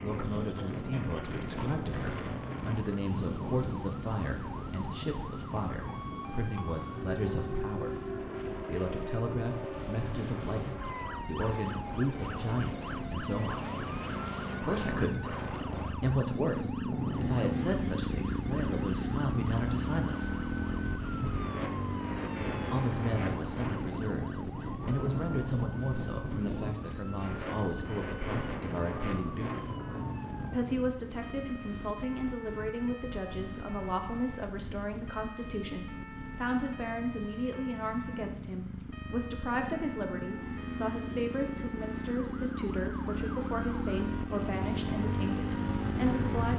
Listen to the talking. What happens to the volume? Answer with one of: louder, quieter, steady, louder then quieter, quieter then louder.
steady.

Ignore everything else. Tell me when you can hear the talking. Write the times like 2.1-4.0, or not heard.
0.0-13.7, 14.6-20.3, 22.7-29.6, 30.5-46.5.